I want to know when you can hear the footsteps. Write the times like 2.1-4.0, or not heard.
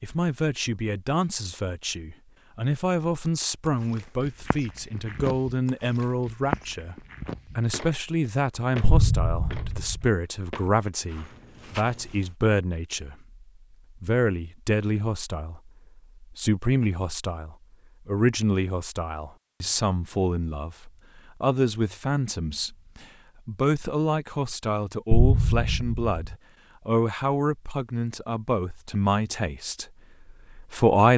3.6-12.3.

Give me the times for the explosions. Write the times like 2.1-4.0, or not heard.
8.8-10.1, 25.1-26.4.